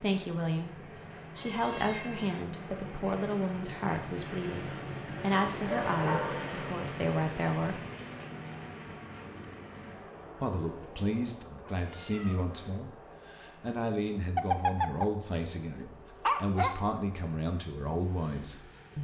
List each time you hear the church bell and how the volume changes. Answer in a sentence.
The church bell can't be heard in this clip.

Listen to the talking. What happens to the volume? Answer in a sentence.
The loudness of the talking stays about the same.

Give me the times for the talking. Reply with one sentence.
The talking can be heard from 0.0 to 7.8 s and from 10.4 to 18.9 s.